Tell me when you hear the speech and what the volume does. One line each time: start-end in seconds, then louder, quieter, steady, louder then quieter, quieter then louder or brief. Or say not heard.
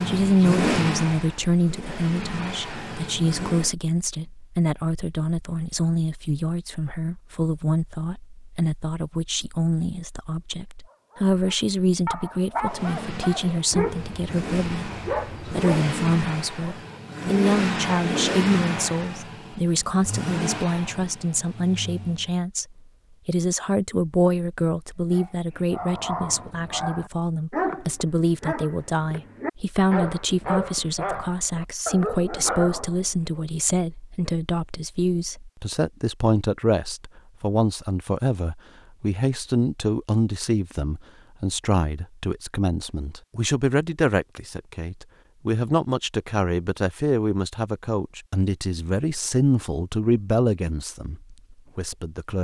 0.1-52.4 steady.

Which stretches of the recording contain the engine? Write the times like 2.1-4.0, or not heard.
0.0-3.7, 12.6-22.4.